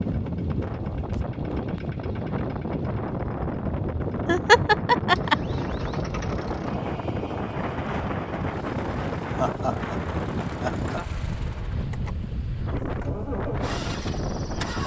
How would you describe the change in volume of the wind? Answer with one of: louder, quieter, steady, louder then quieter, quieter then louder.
steady.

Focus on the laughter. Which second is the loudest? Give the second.
5 s.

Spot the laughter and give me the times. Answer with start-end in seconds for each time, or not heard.
4.2-5.3, 9.3-11.2.